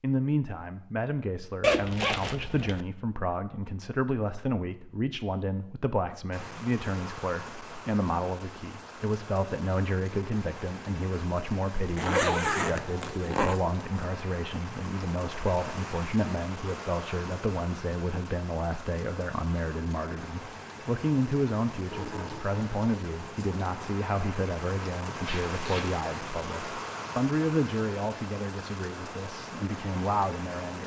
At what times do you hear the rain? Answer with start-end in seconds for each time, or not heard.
6.3-30.8.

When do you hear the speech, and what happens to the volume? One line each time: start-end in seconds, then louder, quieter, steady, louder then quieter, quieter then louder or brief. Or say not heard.
0.0-30.8 steady.